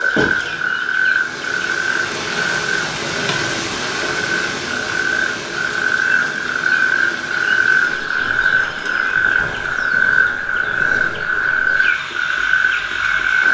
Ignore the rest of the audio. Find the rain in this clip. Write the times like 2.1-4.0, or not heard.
0.0-13.4.